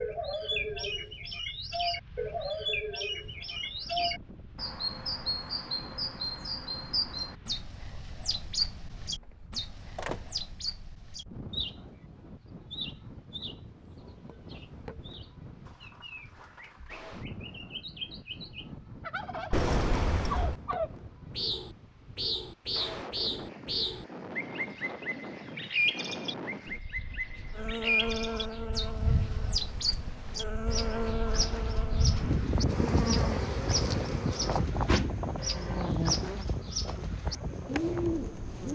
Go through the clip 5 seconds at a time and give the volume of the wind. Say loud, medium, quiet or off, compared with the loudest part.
quiet, quiet, quiet, quiet, medium, medium, loud, loud.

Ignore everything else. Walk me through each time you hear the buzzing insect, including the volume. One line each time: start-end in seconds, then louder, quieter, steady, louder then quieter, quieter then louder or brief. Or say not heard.
27.6-38.7 quieter.